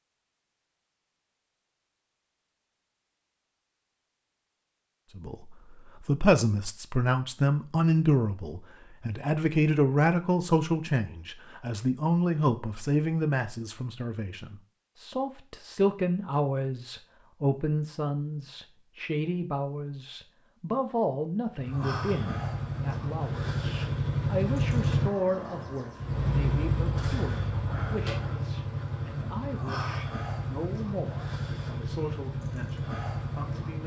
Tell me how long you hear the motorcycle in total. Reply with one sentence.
You can hear the motorcycle for 12 seconds altogether.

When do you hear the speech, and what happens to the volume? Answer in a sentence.
The speech can be heard from 5.2 to 33.8 s, getting quieter.